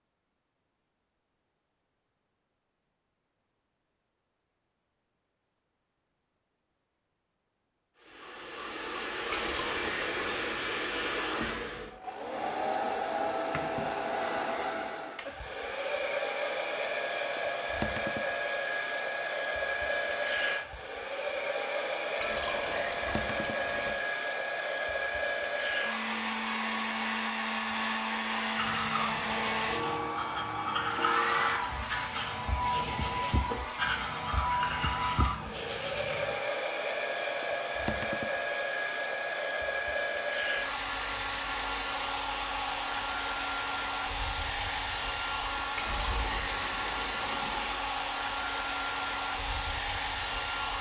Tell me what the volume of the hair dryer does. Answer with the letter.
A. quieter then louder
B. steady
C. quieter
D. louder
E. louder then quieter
B.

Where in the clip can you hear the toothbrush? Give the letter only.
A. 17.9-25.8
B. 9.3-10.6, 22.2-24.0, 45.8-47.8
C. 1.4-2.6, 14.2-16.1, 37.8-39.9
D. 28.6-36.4
D.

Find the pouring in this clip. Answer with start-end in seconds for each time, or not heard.
9.3-10.6, 22.2-24.0, 45.8-47.8.